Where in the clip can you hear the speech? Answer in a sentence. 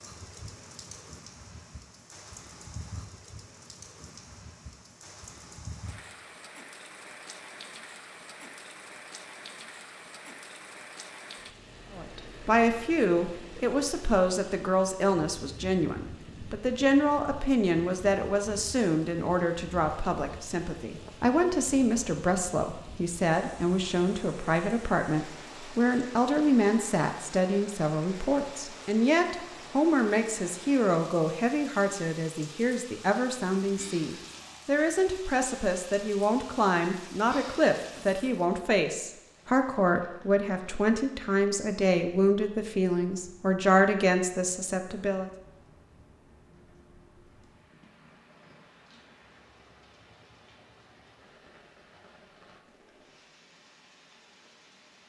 You can hear the speech from 11.9 to 45.3 s.